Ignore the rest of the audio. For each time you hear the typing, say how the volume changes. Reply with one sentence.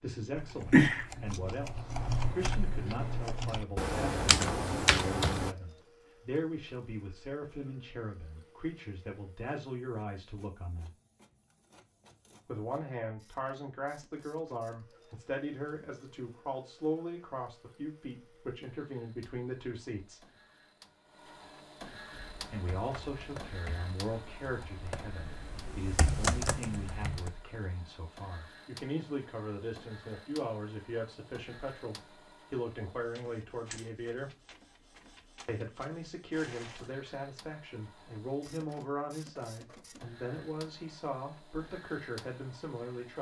The typing can be heard from 0.3 to 5.5 s, getting quieter then louder; and from 22.1 to 27.3 s, getting louder.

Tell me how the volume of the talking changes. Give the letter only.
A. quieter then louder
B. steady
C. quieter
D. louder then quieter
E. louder
B.